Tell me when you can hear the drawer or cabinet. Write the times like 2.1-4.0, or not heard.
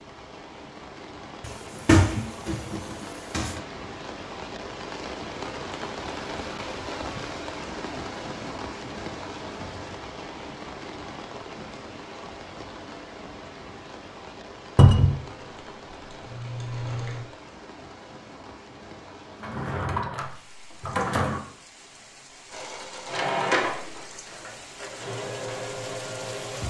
1.4-3.6, 14.8-15.2, 19.4-21.4.